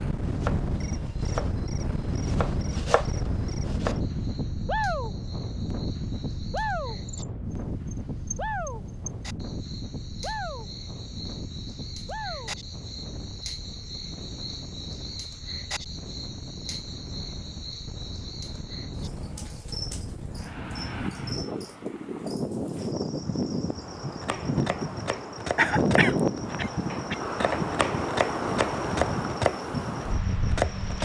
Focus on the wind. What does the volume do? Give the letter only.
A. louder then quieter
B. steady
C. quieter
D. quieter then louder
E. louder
D.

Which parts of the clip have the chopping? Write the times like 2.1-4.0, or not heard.
0.2-4.2, 24.2-31.0.